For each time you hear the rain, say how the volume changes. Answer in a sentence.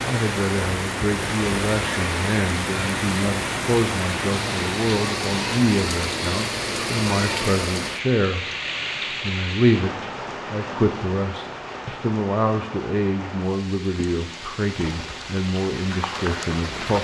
You can hear the rain from 0.0 to 16.9 s, getting quieter.